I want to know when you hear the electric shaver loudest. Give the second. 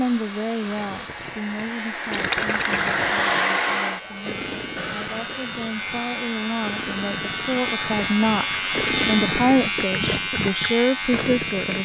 9 s.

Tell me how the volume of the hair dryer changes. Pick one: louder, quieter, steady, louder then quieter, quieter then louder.
louder then quieter.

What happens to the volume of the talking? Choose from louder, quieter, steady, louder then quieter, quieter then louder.
quieter then louder.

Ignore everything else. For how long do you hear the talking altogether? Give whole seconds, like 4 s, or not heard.
12 s.